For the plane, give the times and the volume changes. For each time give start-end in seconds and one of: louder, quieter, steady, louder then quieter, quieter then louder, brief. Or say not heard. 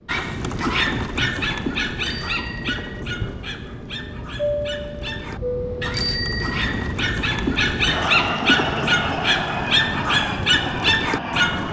0.0-11.6 louder.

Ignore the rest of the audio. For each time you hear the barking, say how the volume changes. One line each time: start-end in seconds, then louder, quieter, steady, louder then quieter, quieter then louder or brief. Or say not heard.
0.1-11.6 quieter then louder.